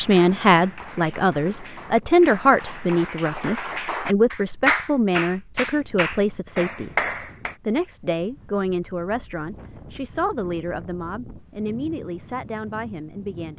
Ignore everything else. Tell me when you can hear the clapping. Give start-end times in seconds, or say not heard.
0.0-7.5.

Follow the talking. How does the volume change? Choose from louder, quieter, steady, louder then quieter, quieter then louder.
quieter.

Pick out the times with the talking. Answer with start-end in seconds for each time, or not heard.
0.0-13.5.